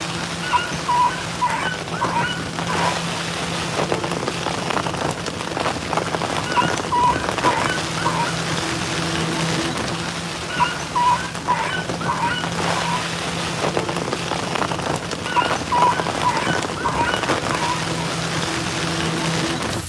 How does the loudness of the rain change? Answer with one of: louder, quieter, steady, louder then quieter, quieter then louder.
steady.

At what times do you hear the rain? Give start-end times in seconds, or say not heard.
0.0-19.8.